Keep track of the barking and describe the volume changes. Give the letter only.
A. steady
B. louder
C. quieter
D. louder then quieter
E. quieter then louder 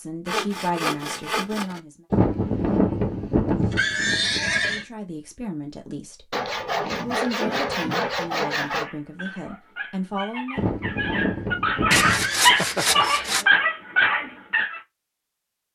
B.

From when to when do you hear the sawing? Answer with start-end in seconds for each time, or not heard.
0.2-1.8, 6.3-8.9, 11.9-13.4.